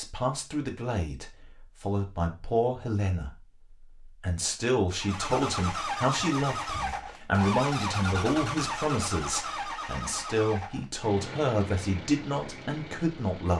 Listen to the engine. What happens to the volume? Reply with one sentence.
The volume of the engine goes down.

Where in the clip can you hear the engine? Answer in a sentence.
The engine can be heard from 5.0 to 13.5 s.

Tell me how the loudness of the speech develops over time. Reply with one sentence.
The loudness of the speech stays about the same.